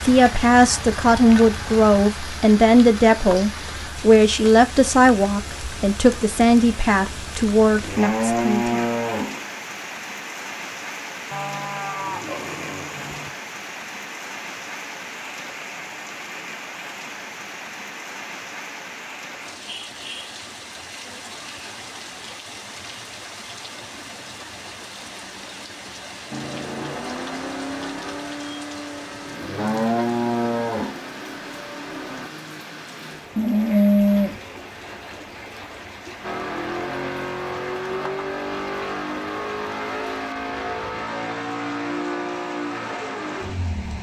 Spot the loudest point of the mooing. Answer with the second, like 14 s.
34 s.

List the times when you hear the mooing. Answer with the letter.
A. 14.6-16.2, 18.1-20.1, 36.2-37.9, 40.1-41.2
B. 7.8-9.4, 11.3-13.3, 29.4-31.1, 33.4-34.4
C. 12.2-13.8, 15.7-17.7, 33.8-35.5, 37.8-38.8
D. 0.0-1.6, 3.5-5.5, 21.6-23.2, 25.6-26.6
B.